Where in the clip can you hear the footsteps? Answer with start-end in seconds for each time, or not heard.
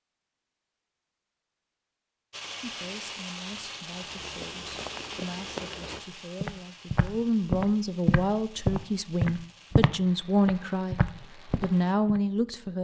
4.0-12.2.